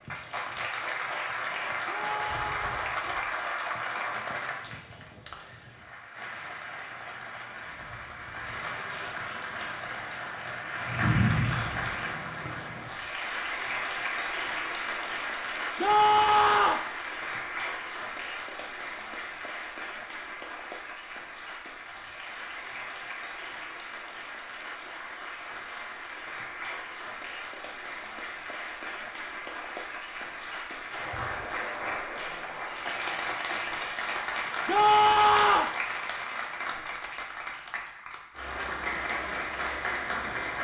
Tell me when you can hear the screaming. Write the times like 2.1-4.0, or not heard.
1.9-2.9, 15.8-16.9, 34.6-35.8.